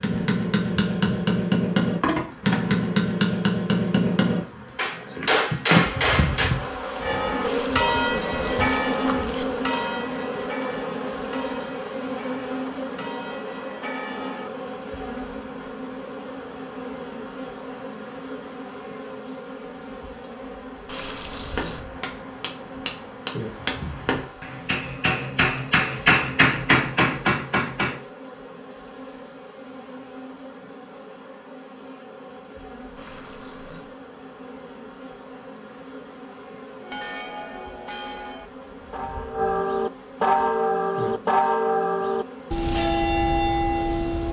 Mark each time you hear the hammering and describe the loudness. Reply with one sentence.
You can hear the hammering from 0.0 to 6.5 s, at a steady volume; and from 21.6 to 28.0 s, getting louder.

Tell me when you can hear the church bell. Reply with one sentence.
You can hear the church bell from 7.0 to 14.5 s and from 36.8 to 44.2 s.